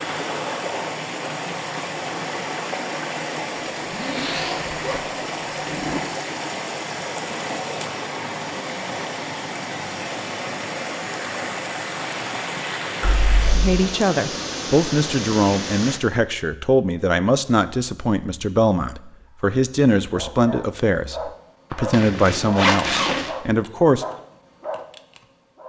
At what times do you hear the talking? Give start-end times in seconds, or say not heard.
13.6-24.1.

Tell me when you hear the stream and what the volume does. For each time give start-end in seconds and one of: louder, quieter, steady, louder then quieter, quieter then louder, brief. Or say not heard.
0.0-16.0 steady.